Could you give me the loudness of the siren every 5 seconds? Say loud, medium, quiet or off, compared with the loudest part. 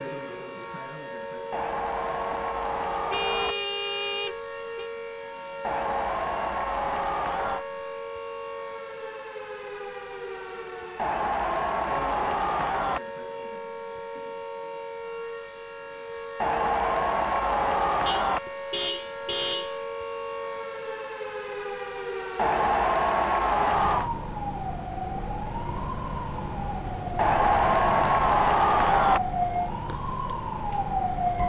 medium, medium, medium, medium, medium, loud, loud.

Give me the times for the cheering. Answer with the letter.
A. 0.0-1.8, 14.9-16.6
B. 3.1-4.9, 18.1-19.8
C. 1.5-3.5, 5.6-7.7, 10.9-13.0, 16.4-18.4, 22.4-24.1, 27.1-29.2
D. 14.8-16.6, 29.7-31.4
C.